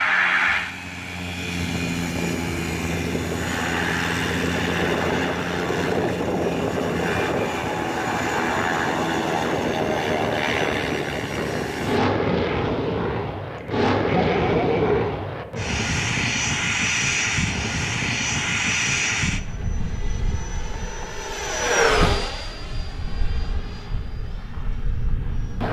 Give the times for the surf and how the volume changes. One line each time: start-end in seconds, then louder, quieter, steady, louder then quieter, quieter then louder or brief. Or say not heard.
not heard.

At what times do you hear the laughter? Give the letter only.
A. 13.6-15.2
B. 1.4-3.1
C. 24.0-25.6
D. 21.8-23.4
A.